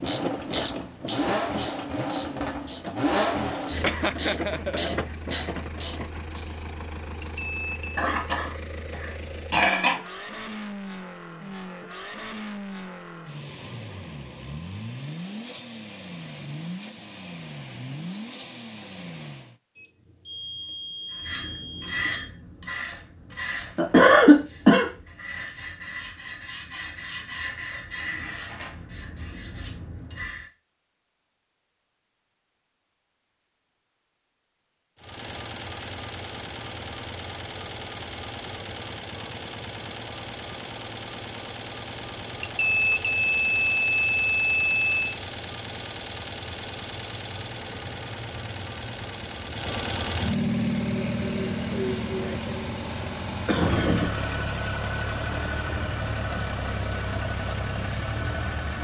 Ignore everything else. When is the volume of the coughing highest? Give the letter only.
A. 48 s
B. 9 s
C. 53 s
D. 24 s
D.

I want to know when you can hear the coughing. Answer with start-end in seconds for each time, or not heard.
8.0-8.4, 9.5-9.9, 23.8-24.9, 51.7-54.1.